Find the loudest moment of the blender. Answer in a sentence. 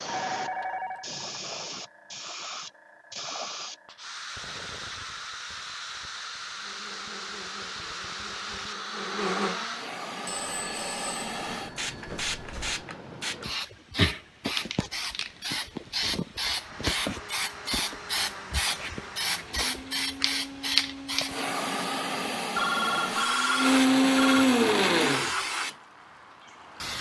The volume of the blender peaks at 24 seconds.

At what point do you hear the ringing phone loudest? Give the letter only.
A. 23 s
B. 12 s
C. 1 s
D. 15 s
A.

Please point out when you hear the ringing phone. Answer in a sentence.
The ringing phone can be heard from 0.1 to 1.1 s, from 10.2 to 12.8 s and from 22.6 to 24.4 s.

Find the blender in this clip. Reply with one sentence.
You can hear the blender from 6.5 to 9.9 s and from 16.4 to 25.4 s.